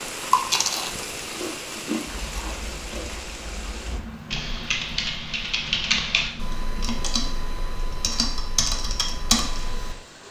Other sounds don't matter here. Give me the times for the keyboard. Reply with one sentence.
You can hear the keyboard from 2.0 to 9.9 s.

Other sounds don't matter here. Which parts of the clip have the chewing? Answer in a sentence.
The chewing can be heard from 0.3 to 3.1 s.